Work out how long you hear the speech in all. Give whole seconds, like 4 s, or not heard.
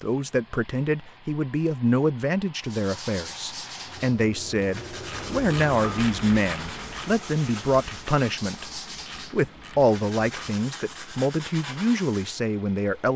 13 s.